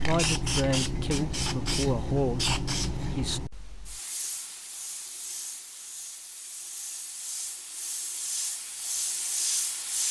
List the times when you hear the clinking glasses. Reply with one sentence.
The clinking glasses can't be heard in this clip.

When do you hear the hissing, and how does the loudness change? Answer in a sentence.
The hissing can be heard from 0.0 to 10.0 s, getting quieter then louder.